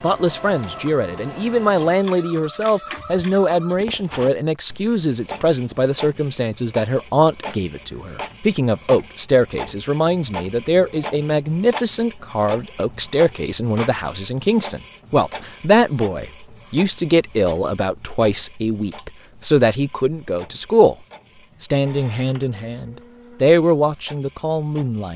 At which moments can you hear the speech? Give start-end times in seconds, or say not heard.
0.0-20.9, 21.6-25.1.